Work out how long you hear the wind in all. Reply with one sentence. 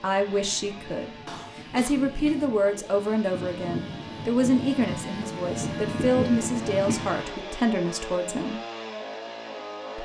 The wind can be heard for 7 seconds in total.